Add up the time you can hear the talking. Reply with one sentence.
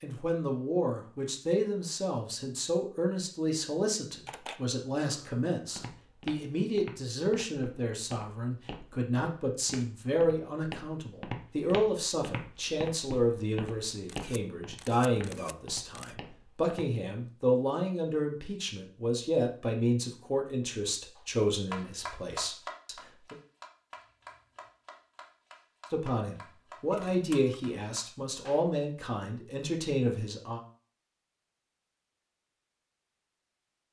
You can hear the talking for 28 seconds altogether.